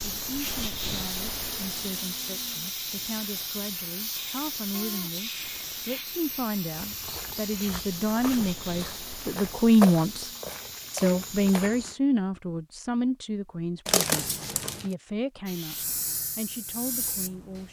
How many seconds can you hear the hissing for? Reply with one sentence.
You can hear the hissing for 14 seconds altogether.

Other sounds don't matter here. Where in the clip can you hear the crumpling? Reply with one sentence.
You can hear the crumpling from 13.8 to 14.9 s.